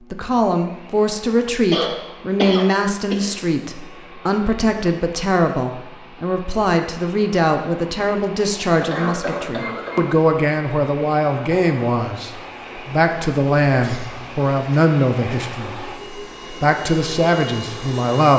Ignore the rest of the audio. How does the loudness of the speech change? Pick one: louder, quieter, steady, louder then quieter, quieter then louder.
steady.